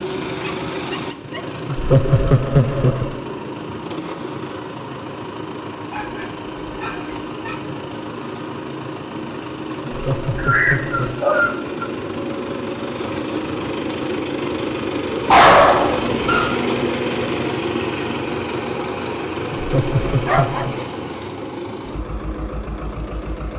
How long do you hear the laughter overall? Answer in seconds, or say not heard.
4 s.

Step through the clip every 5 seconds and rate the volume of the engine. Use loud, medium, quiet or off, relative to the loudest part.
medium, medium, loud, loud, medium.